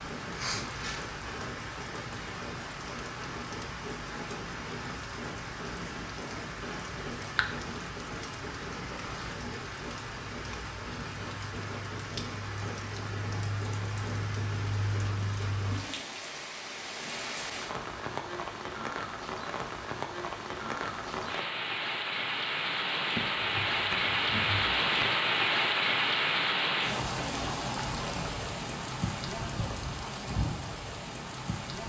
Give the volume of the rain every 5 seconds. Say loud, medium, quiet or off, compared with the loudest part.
medium, medium, medium, medium, loud, loud, medium.